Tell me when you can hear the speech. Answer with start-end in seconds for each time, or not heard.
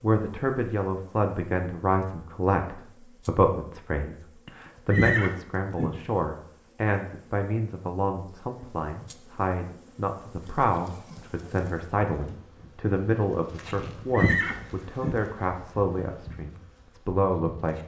0.0-17.8.